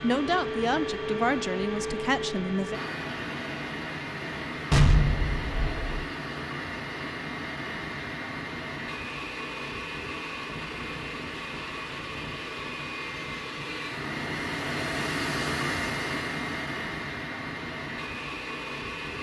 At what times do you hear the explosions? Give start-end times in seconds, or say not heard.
4.7-6.0.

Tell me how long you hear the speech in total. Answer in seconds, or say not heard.
3 s.